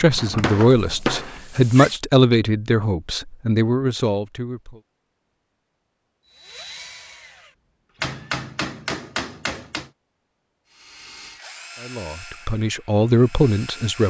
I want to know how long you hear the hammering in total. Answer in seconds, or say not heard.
4 s.